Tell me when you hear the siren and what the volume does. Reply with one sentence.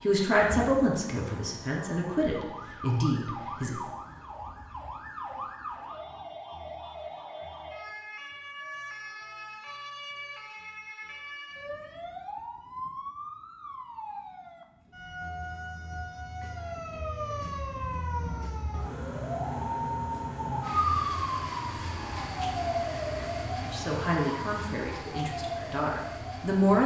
The siren can be heard from 0.0 to 26.8 s, getting louder.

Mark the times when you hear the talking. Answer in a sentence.
You can hear the talking from 0.0 to 3.8 s and from 23.6 to 26.8 s.